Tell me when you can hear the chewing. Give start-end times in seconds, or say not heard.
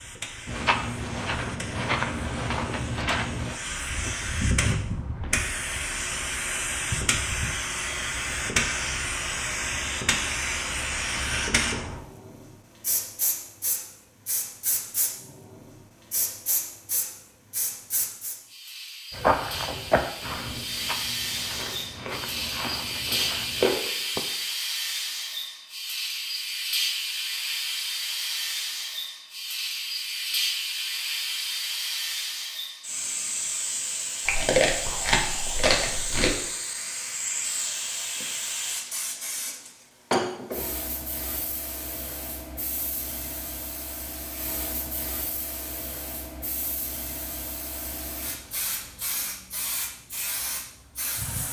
21.6-23.9, 34.2-36.3.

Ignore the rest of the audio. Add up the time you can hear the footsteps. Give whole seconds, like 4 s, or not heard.
10 s.